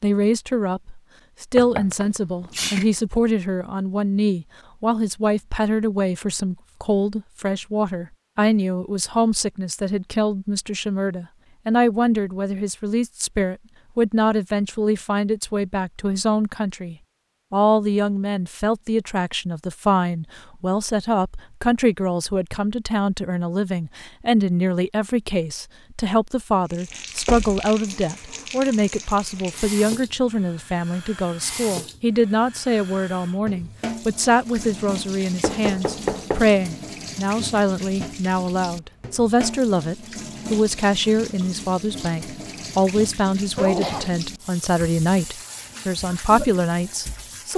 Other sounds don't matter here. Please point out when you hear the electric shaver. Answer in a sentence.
You can't hear the electric shaver here.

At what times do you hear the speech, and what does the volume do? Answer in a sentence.
The speech can be heard from 0.0 to 47.5 s, at a steady volume.